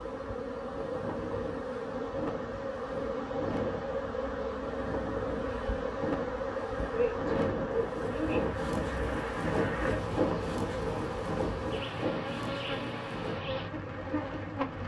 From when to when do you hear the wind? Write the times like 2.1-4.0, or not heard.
0.0-14.8.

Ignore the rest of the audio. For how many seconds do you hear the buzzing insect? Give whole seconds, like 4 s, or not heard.
15 s.